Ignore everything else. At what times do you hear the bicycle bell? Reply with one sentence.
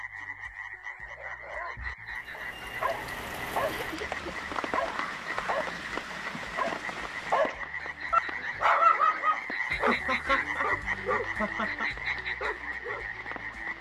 The bicycle bell can't be heard in this clip.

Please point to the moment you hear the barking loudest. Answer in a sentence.
The volume of the barking peaks at 9 seconds.